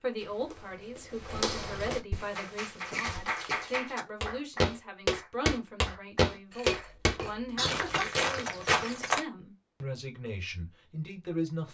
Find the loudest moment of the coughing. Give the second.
8 s.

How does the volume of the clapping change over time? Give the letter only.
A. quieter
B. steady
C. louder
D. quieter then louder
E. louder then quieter
A.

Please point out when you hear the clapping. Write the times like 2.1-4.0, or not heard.
2.1-8.2.